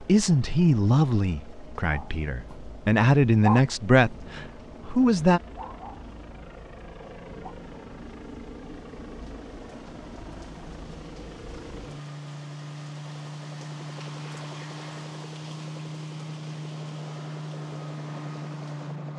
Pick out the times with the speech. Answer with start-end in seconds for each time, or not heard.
0.0-5.4.